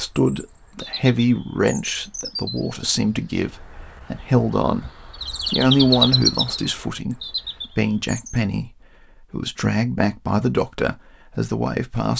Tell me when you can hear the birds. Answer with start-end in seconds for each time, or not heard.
0.0-8.4.